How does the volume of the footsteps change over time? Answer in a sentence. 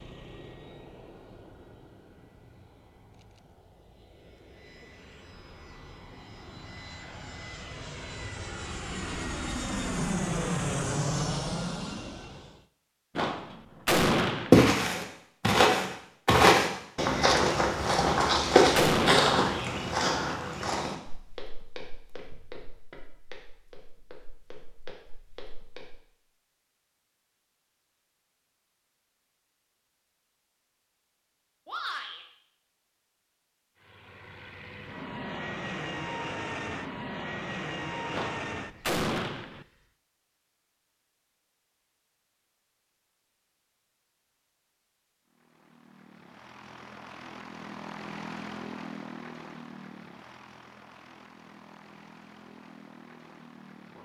The loudness of the footsteps goes down.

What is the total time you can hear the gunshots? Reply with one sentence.
You can hear the gunshots for 4 seconds altogether.